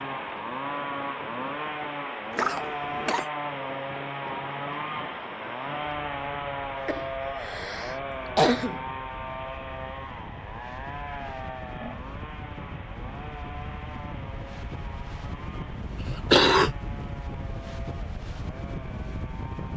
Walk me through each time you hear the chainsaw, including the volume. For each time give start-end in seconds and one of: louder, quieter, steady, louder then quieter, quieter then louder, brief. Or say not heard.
0.0-19.7 quieter.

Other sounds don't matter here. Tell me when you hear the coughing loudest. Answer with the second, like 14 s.
16 s.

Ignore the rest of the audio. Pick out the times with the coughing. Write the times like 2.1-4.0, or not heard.
2.4-3.2, 6.8-8.8, 16.0-16.8.